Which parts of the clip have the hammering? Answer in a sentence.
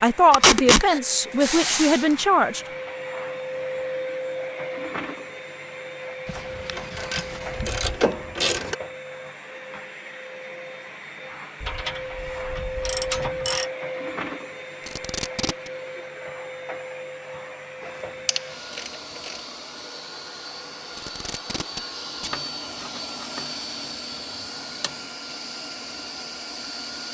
You can't hear the hammering here.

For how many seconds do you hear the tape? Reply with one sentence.
You can hear the tape for 3 seconds altogether.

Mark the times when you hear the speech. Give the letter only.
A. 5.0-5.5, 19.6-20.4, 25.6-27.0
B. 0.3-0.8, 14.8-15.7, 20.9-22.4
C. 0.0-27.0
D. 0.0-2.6
D.